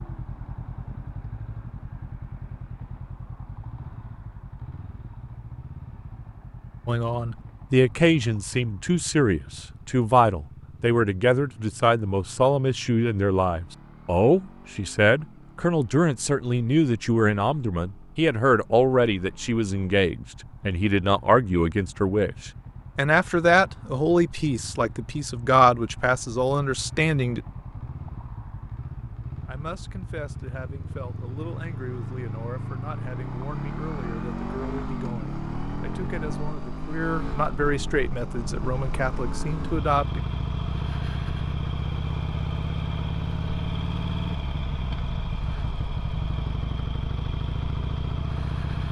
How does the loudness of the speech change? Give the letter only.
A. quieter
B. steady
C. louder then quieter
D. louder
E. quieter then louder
A.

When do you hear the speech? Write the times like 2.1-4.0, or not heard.
6.8-27.4, 29.4-40.2.